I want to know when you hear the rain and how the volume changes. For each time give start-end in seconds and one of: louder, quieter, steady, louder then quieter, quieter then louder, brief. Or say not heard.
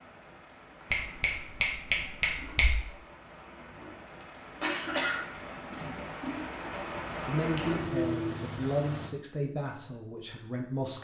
0.0-9.1 louder.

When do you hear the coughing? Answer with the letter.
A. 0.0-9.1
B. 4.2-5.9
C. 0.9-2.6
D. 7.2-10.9
B.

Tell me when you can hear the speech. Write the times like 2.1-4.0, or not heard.
7.2-10.9.